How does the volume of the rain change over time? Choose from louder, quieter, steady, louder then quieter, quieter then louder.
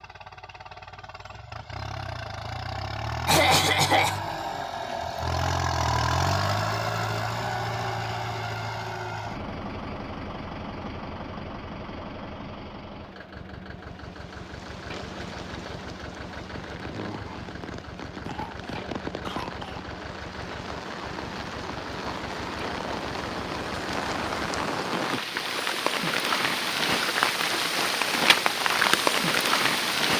louder.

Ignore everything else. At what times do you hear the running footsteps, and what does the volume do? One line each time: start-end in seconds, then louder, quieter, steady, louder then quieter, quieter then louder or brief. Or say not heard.
not heard.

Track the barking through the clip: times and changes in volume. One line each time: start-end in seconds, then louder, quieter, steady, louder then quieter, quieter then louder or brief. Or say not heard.
not heard.